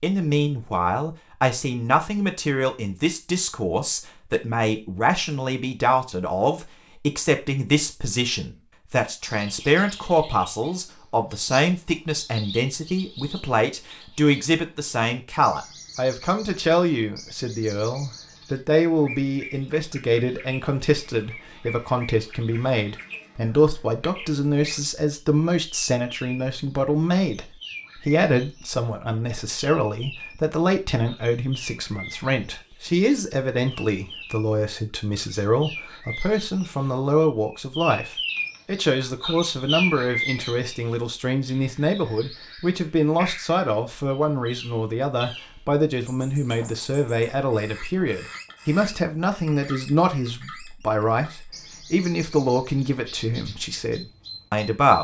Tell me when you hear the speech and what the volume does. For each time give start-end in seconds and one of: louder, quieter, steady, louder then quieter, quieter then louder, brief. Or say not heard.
0.0-54.9 steady.